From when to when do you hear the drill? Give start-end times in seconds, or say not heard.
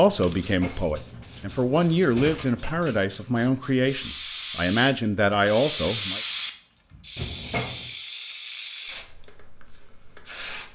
not heard.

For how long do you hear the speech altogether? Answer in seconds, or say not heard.
6 s.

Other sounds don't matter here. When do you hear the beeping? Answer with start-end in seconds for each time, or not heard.
not heard.